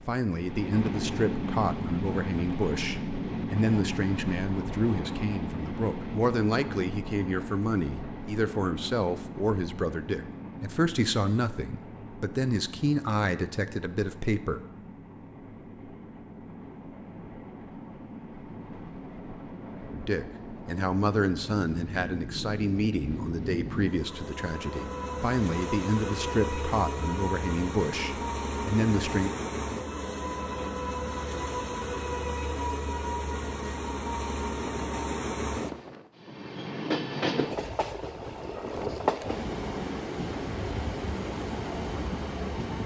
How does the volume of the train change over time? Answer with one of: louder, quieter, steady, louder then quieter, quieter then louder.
quieter then louder.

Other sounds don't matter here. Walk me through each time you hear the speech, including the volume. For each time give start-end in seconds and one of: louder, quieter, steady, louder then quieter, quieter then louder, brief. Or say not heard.
0.1-14.6 steady
19.9-29.3 steady.